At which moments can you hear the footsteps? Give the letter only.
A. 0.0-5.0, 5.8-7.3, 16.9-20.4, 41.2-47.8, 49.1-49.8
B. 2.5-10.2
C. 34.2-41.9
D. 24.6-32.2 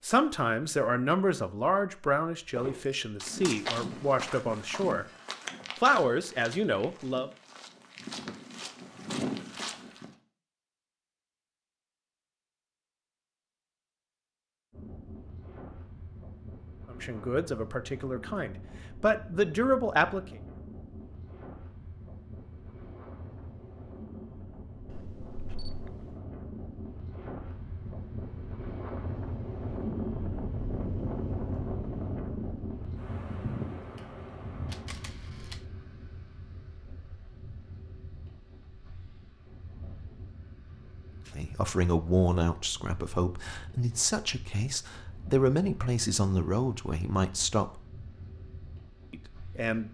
B.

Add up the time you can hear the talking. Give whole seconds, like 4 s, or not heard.
17 s.